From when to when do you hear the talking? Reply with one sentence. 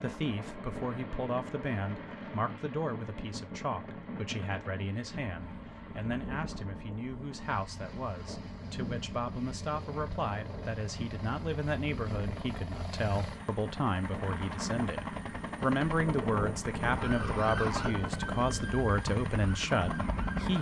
You can hear the talking from 0.0 to 20.5 s.